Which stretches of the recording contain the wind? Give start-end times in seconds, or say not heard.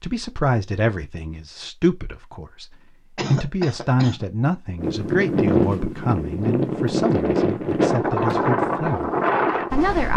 4.8-10.1.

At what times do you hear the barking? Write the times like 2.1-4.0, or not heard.
not heard.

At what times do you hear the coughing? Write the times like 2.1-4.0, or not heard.
3.1-4.2.